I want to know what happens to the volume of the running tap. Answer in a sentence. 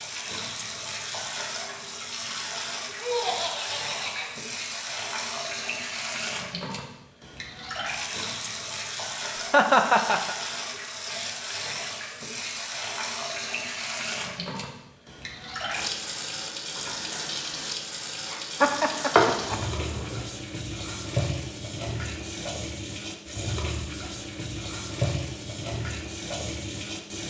The volume of the running tap stays about the same.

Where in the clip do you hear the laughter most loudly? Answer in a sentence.
The volume of the laughter peaks at 10 seconds.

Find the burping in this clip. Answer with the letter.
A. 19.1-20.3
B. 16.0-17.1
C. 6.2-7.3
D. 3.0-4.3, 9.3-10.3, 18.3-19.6
A.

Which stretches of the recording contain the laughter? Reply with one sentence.
The laughter can be heard from 3.0 to 4.3 s, from 9.3 to 10.3 s and from 18.3 to 19.6 s.